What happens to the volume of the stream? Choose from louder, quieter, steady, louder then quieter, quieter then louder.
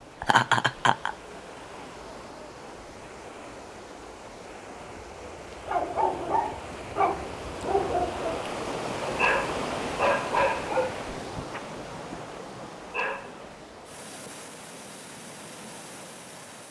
louder then quieter.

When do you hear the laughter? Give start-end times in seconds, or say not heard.
0.2-1.1.